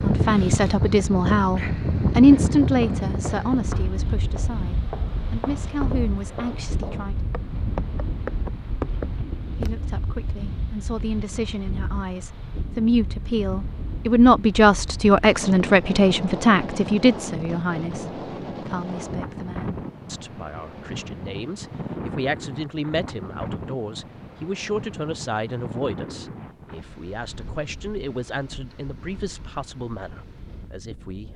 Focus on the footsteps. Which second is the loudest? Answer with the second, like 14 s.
9 s.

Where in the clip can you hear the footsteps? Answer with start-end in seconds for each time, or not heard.
2.6-9.9.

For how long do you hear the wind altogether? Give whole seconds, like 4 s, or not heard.
31 s.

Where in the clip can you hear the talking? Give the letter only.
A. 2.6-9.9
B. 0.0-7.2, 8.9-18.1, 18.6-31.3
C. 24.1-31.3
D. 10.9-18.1
B.